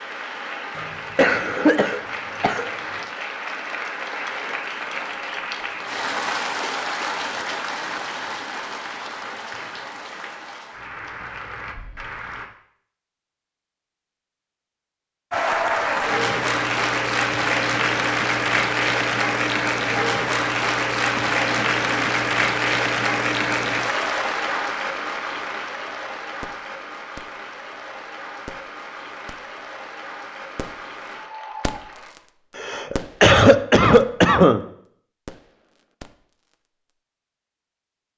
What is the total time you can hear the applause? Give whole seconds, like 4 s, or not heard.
29 s.